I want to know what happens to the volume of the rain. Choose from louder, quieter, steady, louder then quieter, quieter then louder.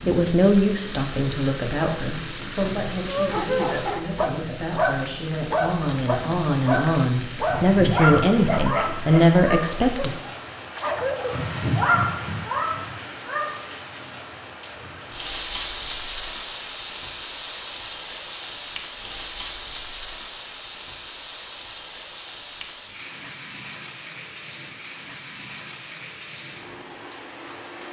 louder then quieter.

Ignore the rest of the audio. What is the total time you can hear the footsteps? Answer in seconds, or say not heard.
not heard.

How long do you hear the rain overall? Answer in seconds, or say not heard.
28 s.